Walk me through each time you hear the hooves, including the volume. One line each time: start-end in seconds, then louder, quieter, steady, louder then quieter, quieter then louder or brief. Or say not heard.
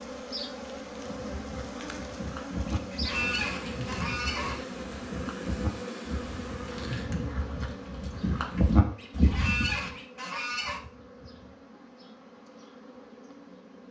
1.1-9.9 louder.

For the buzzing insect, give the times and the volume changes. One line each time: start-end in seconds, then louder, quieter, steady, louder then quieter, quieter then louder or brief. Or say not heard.
0.0-13.8 quieter.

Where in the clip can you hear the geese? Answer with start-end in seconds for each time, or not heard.
2.7-4.6, 8.9-10.8.